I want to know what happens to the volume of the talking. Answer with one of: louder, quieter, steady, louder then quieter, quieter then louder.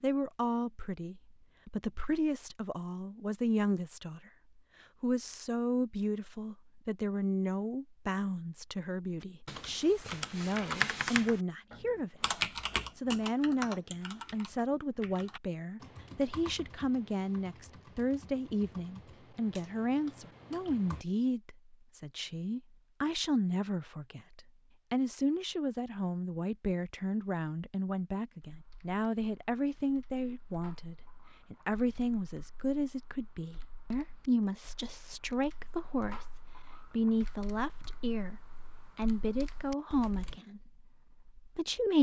steady.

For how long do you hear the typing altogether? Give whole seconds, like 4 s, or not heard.
24 s.